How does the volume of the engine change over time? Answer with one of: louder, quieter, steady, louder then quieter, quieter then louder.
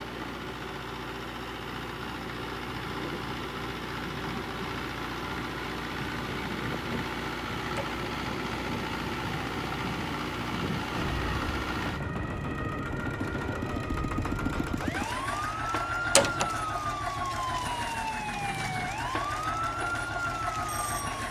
steady.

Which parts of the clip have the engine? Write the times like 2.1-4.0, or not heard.
0.0-21.2.